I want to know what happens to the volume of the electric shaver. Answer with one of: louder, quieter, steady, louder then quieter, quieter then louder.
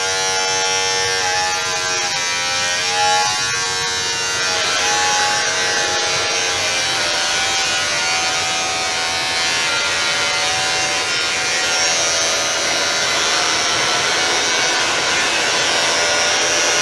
steady.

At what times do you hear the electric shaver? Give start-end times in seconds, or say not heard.
0.0-16.7.